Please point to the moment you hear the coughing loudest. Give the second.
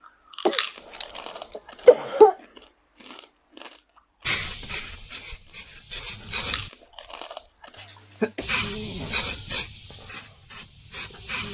2 s.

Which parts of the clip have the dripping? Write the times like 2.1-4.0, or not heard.
not heard.